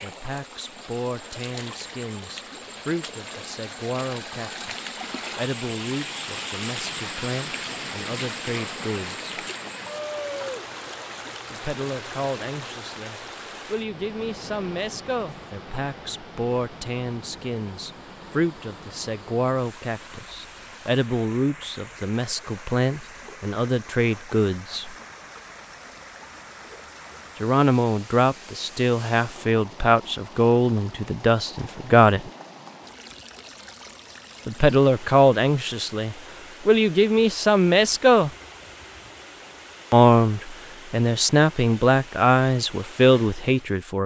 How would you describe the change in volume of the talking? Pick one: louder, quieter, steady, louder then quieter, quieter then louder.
louder.